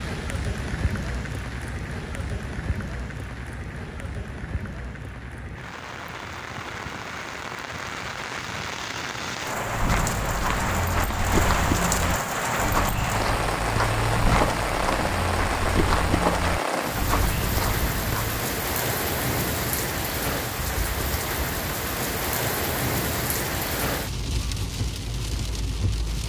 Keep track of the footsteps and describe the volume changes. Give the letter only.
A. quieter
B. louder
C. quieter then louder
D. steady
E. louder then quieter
D.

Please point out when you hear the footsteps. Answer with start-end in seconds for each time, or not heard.
9.6-18.4.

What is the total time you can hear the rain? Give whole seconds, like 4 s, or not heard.
26 s.